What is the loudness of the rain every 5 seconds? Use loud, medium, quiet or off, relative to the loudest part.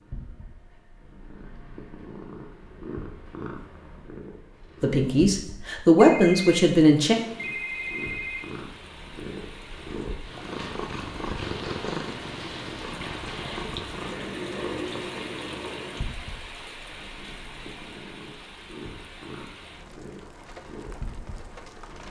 off, medium, loud, loud, medium.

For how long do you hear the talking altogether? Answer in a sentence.
You can hear the talking for 2 seconds altogether.